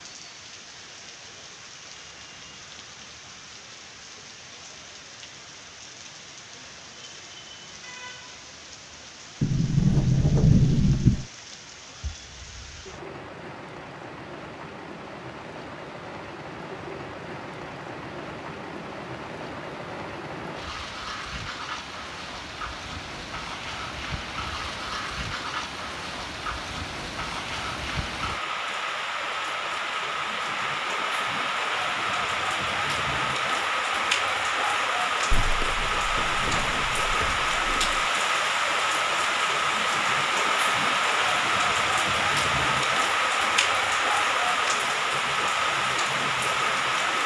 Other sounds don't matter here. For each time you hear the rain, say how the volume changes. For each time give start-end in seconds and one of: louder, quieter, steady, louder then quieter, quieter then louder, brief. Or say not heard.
0.0-47.2 louder.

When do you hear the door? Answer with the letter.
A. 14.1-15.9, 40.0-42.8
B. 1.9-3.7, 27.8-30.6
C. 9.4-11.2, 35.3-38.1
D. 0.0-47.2
C.